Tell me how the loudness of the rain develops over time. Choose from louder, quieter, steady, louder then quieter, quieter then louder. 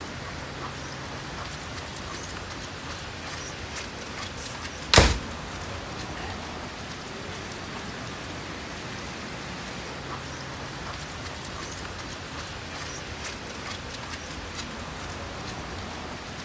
steady.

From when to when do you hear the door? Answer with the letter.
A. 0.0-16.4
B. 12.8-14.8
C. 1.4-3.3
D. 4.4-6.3
D.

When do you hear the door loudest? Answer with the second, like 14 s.
5 s.